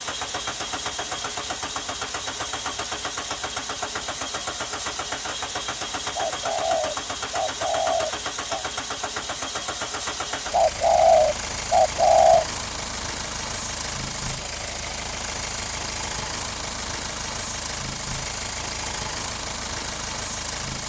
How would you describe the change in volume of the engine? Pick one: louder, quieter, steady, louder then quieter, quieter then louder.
steady.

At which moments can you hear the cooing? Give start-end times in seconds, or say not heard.
6.2-8.7, 10.5-12.4.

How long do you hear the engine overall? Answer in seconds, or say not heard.
21 s.